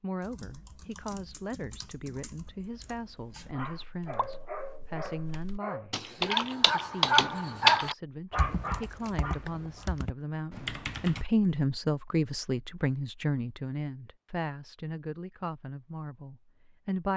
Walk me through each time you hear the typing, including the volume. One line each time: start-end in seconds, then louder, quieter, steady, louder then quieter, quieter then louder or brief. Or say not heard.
0.2-11.2 louder then quieter.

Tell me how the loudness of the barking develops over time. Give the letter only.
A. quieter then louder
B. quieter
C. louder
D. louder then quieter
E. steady
D.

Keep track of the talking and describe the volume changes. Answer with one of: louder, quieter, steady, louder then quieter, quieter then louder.
louder then quieter.